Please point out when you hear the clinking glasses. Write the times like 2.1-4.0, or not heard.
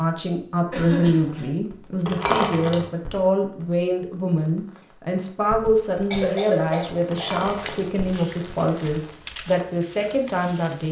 2.0-2.9, 7.1-7.8.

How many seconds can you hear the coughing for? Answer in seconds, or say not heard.
2 s.